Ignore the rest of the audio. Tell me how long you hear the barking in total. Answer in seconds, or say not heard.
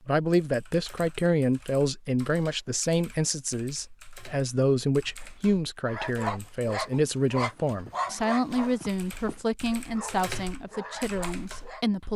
6 s.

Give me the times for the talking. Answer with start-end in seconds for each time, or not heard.
0.1-12.1.